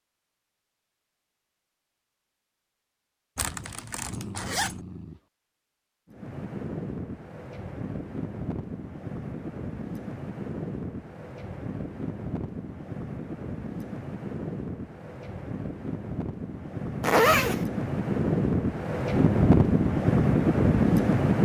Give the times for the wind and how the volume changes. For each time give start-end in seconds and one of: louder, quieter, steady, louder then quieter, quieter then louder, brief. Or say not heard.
6.0-21.4 louder.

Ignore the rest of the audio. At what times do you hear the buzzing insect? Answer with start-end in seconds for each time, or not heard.
not heard.